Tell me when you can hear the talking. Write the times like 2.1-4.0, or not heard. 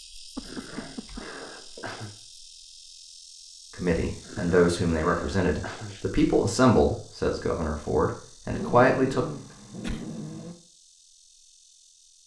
3.8-9.2.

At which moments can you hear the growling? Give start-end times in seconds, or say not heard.
0.4-2.1, 4.2-6.0, 8.5-10.6.